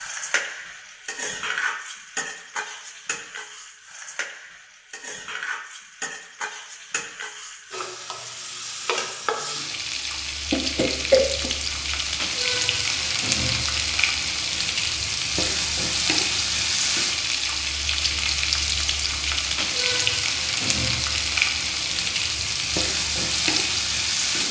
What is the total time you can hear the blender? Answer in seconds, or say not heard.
not heard.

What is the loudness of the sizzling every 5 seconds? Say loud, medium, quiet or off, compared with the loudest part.
medium, medium, loud, loud, loud.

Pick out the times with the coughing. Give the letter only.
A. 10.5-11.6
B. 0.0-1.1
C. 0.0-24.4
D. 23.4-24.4
A.